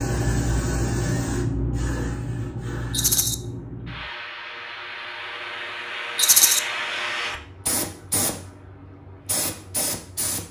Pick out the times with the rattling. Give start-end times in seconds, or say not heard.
2.9-3.4, 6.2-6.6.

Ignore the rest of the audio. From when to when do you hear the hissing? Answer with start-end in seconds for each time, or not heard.
0.0-10.4.